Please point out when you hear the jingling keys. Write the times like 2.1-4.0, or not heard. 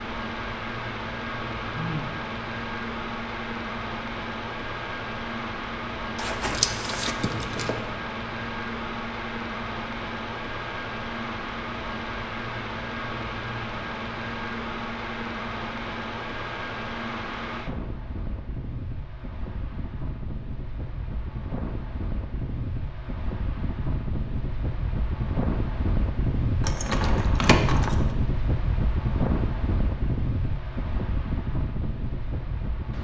6.2-7.8, 26.6-28.1.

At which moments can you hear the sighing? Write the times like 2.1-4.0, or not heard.
1.6-2.1.